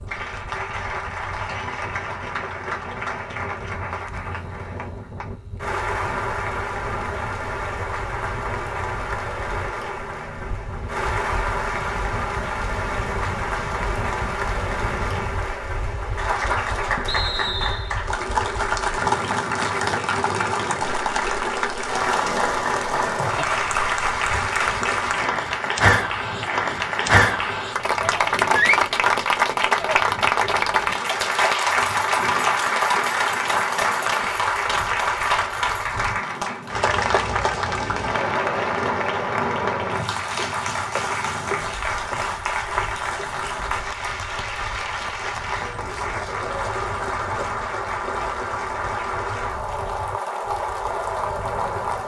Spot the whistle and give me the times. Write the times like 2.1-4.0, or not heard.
17.1-17.9.